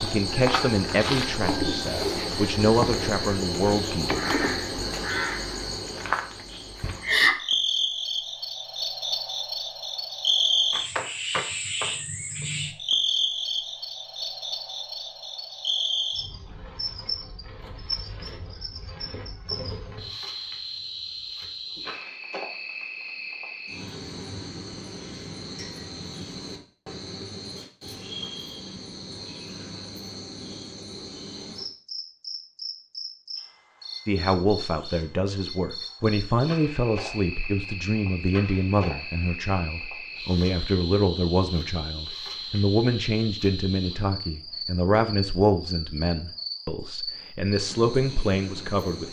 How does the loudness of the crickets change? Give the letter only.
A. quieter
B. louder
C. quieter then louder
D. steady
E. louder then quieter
A.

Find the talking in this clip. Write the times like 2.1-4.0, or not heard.
0.0-4.3, 34.0-49.0.